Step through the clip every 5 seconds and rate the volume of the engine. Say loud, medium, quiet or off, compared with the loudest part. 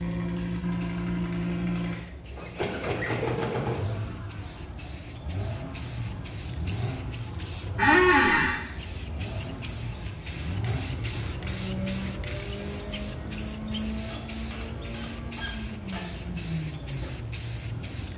loud, medium, medium, medium.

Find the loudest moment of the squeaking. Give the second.
8 s.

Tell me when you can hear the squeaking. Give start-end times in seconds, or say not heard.
2.4-3.2, 7.8-8.6, 14.1-16.1.